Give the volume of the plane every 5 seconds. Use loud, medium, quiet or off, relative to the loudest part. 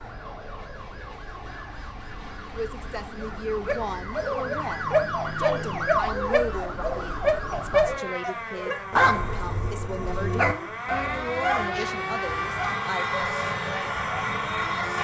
quiet, quiet, loud.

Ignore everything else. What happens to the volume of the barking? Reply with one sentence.
The volume of the barking goes down.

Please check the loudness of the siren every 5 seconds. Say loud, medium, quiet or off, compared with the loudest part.
medium, loud, loud.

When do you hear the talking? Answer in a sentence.
You can hear the talking from 2.5 to 13.1 s.